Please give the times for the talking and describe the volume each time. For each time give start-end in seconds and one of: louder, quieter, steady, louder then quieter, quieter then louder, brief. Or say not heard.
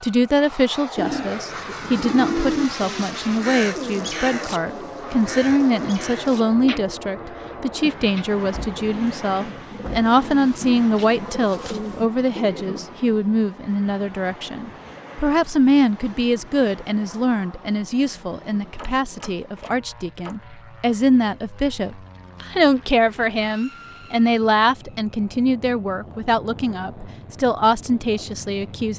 0.0-28.9 steady.